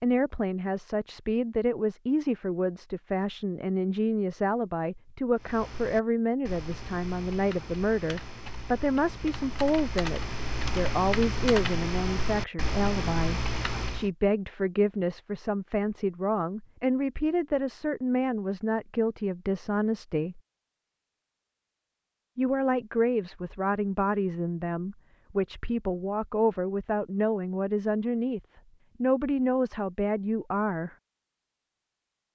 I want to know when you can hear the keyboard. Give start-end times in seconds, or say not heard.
5.3-14.1.